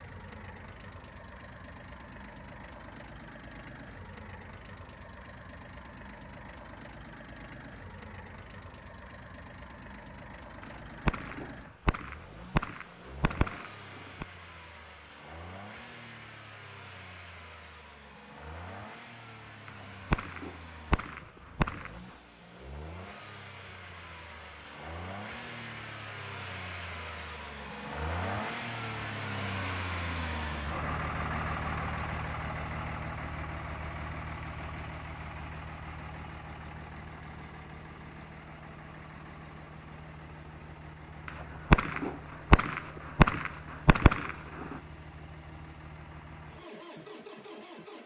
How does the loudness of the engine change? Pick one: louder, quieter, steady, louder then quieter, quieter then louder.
louder then quieter.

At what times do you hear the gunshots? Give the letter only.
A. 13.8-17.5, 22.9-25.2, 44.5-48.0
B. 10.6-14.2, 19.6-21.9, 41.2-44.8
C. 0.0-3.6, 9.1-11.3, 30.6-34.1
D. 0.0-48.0
B.